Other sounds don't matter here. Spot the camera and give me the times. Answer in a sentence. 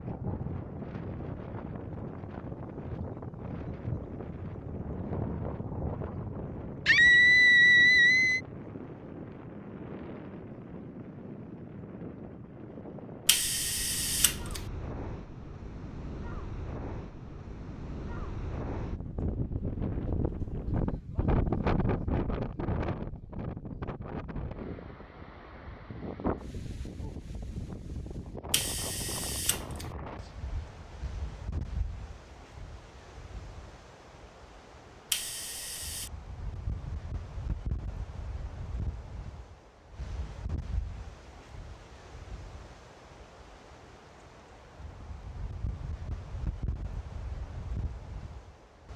The camera can be heard from 13.2 to 14.7 s, from 28.5 to 29.9 s and from 35.1 to 36.1 s.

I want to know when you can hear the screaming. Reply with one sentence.
The screaming can be heard from 6.8 to 8.4 s.